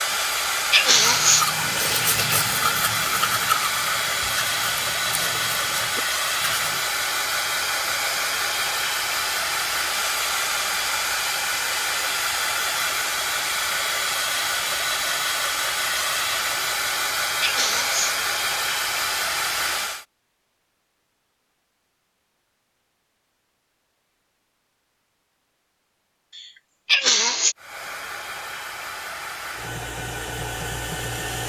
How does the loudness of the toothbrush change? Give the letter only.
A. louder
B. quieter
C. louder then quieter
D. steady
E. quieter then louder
B.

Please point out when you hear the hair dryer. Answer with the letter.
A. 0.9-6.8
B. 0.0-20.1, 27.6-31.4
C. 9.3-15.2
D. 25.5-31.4
B.